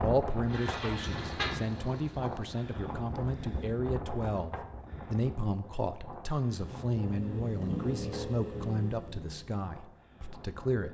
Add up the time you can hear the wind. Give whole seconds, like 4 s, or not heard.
11 s.